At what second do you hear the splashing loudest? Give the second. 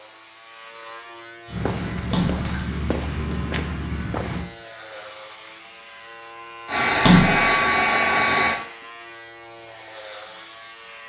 7 s.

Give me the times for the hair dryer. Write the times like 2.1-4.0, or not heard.
6.7-8.6.